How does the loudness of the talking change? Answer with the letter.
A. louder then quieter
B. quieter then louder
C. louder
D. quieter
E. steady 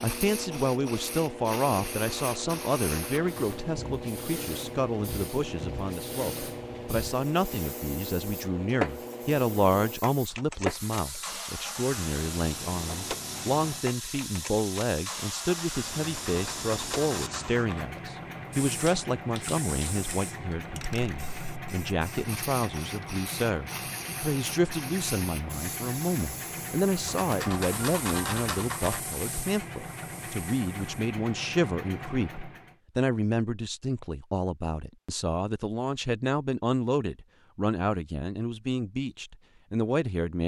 E.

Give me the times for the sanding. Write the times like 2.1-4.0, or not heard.
1.9-3.6, 15.9-17.9, 27.1-29.0.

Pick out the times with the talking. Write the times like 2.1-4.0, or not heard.
0.0-40.4.